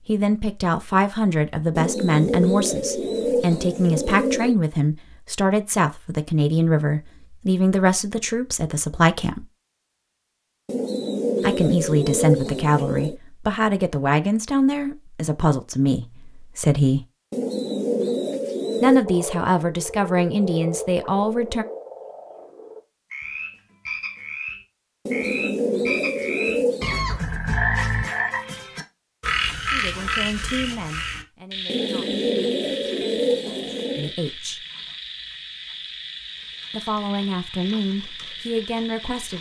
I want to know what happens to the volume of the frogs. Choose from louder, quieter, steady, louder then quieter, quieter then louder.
louder then quieter.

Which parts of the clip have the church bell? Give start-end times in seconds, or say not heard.
not heard.